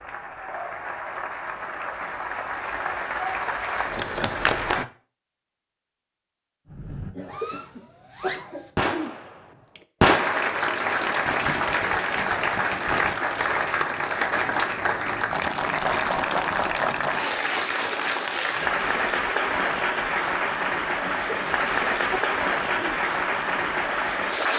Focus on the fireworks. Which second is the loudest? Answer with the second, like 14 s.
10 s.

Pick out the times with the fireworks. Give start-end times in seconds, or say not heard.
6.7-10.5, 11.2-13.2.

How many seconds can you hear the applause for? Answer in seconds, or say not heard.
19 s.